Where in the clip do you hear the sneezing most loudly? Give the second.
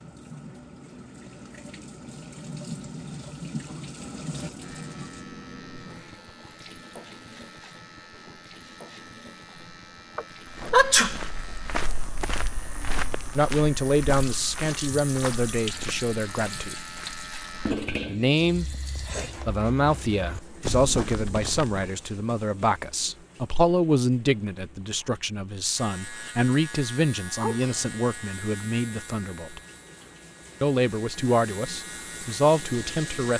11 s.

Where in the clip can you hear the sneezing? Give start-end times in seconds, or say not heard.
10.2-11.2, 27.4-27.9.